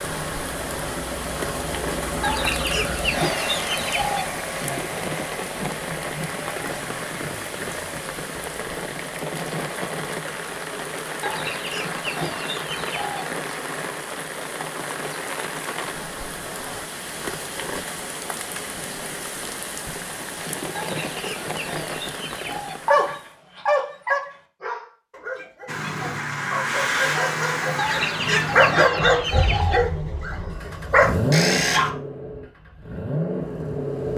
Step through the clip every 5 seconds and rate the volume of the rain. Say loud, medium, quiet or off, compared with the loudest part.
loud, loud, loud, loud, loud, off, off.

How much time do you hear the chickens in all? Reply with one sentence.
You can hear the chickens for 8 seconds altogether.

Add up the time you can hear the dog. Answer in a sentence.
You can hear the dog for 9 seconds altogether.